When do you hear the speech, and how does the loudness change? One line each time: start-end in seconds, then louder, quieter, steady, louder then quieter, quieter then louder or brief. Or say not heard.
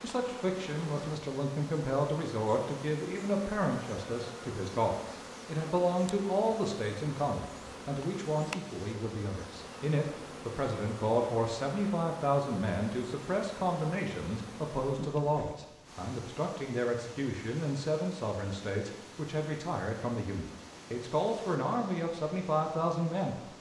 0.0-23.5 steady.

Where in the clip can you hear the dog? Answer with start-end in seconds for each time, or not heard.
not heard.